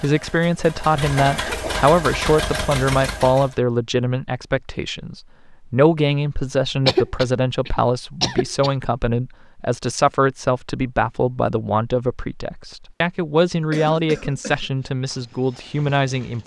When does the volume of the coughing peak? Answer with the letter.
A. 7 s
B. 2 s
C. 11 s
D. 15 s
A.